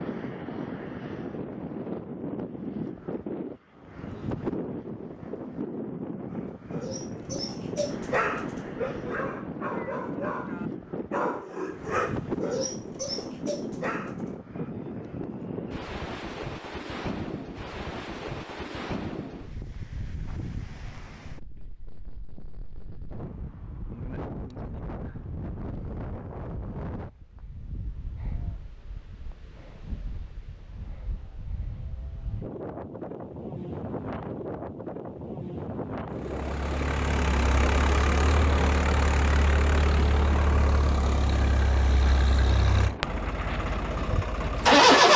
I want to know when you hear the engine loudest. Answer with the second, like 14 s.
45 s.